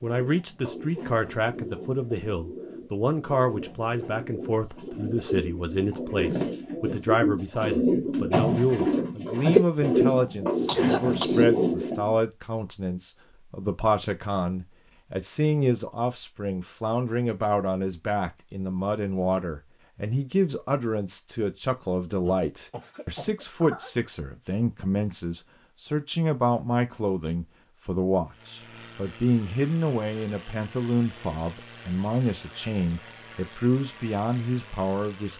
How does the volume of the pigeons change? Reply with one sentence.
The loudness of the pigeons goes up.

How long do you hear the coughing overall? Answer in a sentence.
You can hear the coughing for 3 seconds altogether.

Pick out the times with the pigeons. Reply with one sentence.
The pigeons can be heard from 0.0 to 12.2 s.